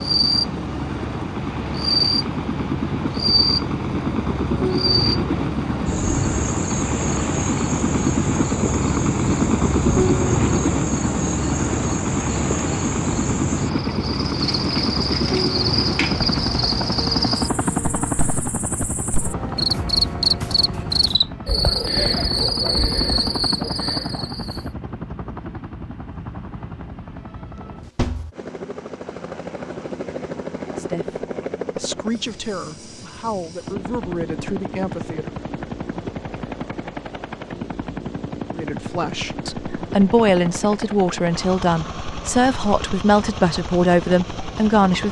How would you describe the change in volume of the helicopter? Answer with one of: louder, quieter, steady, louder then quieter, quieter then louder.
quieter.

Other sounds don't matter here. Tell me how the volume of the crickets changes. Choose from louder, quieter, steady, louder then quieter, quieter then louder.
quieter then louder.